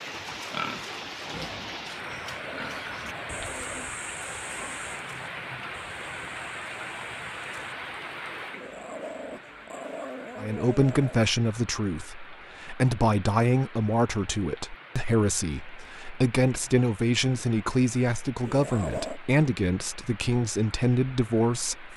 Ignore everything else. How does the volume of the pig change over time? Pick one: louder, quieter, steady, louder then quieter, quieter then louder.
quieter.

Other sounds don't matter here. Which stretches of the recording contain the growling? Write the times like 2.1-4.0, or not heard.
1.9-3.8, 8.5-11.2, 18.4-19.2.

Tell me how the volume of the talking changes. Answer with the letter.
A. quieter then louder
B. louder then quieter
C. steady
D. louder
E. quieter
C.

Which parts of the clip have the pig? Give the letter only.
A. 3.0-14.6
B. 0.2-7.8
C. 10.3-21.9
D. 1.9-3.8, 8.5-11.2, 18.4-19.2
B.